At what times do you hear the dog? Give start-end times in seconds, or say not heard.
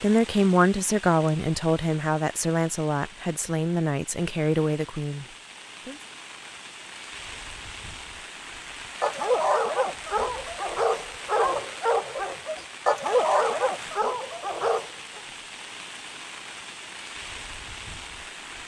9.0-15.2.